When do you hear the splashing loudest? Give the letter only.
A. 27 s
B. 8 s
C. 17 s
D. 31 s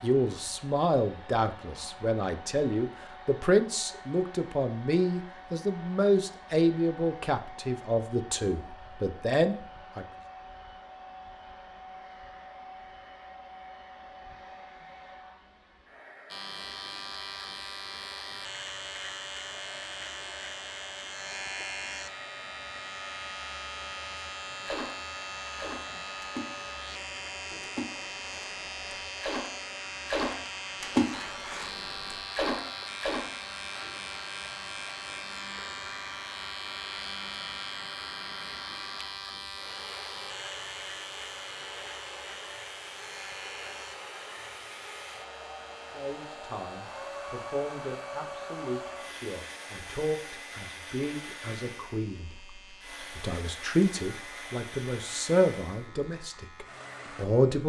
D.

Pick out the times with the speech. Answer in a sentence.
The speech can be heard from 0.0 to 10.1 s and from 46.0 to 57.6 s.